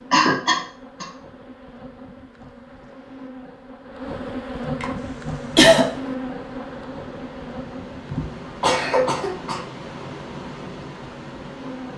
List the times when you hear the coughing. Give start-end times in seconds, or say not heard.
0.1-1.1, 4.7-5.8, 8.1-9.6.